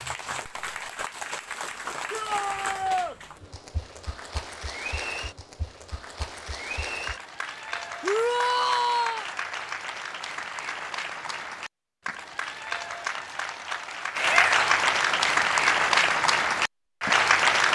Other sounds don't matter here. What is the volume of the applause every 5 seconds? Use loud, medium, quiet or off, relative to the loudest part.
quiet, quiet, medium, loud.